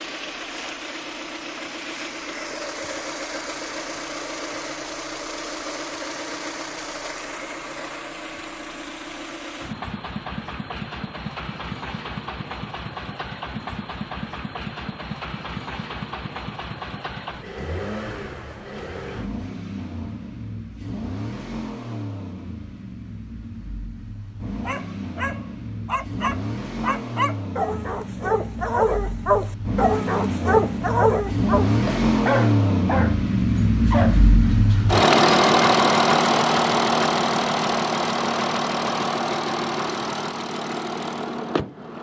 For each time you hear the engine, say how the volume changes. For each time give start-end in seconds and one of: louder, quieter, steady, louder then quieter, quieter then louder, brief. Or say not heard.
0.0-41.9 louder.